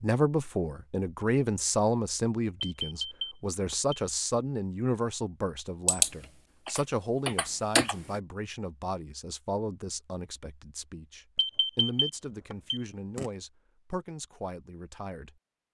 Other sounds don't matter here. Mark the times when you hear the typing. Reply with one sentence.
The typing can be heard from 5.8 to 8.2 s.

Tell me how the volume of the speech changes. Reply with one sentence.
The volume of the speech goes down.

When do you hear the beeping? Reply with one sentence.
You can hear the beeping from 2.8 to 4.0 s and from 11.3 to 13.2 s.